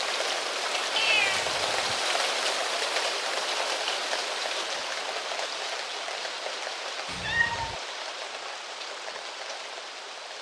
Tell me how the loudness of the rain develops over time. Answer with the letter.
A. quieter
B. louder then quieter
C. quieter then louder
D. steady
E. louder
A.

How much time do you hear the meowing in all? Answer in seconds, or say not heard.
2 s.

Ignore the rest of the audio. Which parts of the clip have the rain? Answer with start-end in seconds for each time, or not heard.
0.0-10.3.